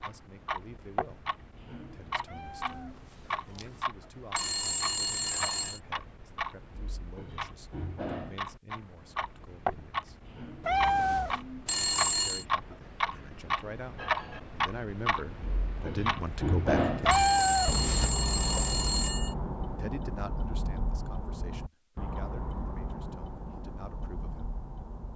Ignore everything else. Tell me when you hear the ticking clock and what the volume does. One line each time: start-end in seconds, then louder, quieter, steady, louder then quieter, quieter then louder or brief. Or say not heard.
0.0-25.1 louder then quieter.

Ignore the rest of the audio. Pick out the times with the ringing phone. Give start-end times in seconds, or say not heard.
4.3-5.8, 11.7-12.4, 17.1-19.4.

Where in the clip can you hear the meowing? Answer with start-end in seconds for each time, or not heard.
2.2-3.8, 10.6-11.4, 17.0-18.1.